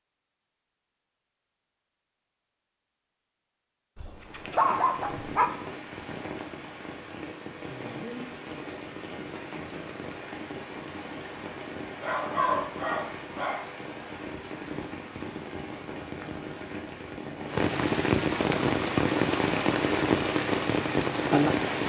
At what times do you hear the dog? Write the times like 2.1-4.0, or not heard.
4.0-5.5, 12.0-13.7.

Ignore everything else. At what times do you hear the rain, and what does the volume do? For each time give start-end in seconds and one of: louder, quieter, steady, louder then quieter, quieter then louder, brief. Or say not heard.
4.2-21.8 louder.